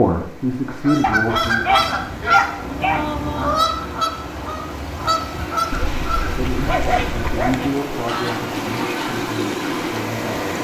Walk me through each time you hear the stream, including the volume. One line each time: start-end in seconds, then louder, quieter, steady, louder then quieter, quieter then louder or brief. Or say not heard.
0.0-10.5 louder.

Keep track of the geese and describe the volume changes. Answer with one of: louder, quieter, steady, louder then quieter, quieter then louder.
quieter.